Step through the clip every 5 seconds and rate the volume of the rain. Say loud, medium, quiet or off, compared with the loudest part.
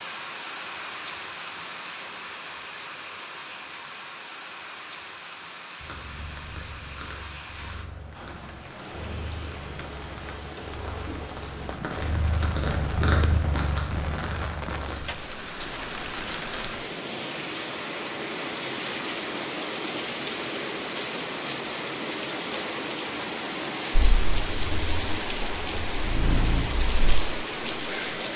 medium, medium, medium, loud, loud, loud.